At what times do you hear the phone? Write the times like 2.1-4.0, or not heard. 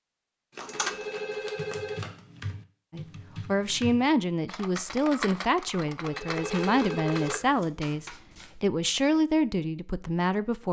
0.7-2.0, 6.0-7.4.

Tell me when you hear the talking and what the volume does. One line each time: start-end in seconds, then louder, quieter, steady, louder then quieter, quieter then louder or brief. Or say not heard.
2.9-10.6 steady.